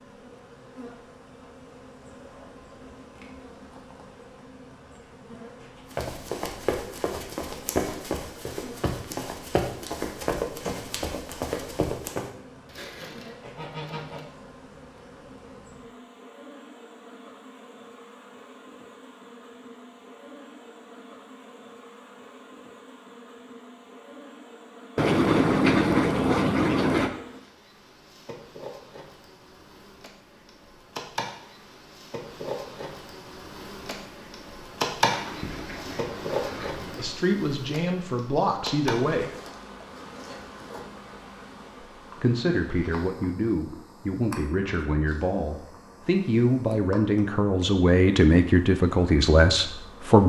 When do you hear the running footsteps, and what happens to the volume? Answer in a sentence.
The running footsteps can be heard from 5.9 to 12.3 s, at a steady volume.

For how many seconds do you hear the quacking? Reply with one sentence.
The quacking can be heard for 6 seconds in total.